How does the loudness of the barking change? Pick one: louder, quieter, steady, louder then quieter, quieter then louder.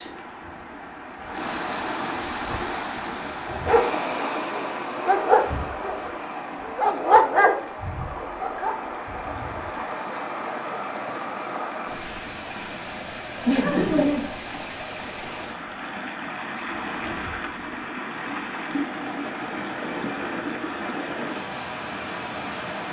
louder then quieter.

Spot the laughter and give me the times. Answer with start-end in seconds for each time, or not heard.
13.4-14.4.